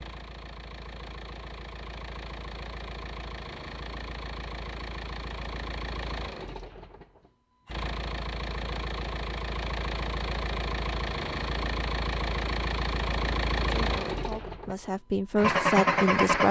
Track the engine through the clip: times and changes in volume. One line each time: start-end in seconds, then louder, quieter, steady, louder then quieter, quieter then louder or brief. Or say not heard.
0.0-16.4 louder.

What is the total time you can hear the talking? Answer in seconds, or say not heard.
3 s.